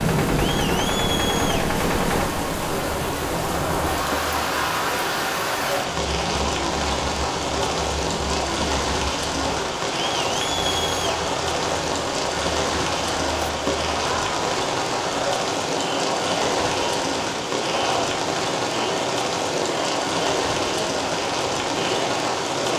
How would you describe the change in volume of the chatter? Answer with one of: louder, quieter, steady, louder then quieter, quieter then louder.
steady.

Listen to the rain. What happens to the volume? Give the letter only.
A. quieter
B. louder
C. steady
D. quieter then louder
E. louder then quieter
C.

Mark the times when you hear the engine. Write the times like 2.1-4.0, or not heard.
0.0-2.3.